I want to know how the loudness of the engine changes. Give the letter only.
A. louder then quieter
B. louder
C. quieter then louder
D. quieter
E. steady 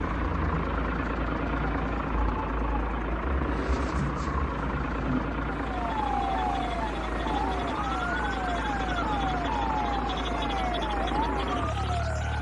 E.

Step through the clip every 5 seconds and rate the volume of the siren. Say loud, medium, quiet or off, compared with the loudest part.
medium, loud, loud.